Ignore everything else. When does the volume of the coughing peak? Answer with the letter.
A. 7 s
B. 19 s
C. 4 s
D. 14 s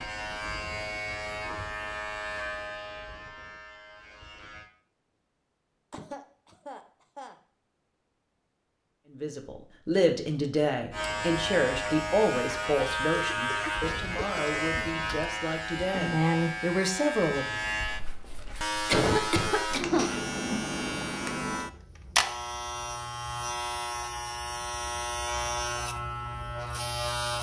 B.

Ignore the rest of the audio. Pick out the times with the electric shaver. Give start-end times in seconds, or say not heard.
0.0-4.7, 10.9-27.3.